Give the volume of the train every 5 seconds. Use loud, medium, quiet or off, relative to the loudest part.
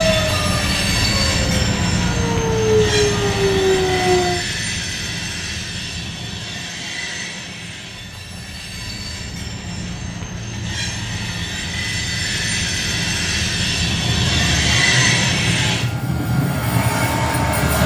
loud, medium, loud, loud.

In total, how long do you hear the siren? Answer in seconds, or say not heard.
8 s.